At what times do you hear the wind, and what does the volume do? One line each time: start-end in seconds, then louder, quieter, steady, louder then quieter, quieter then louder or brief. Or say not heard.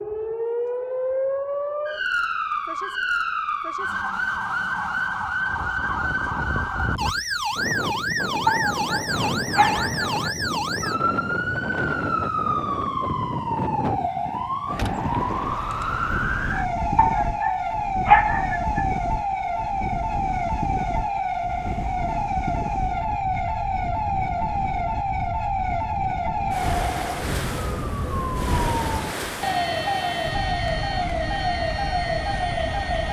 5.4-33.0 steady.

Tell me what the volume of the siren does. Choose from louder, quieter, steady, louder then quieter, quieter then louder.
steady.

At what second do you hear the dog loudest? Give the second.
18 s.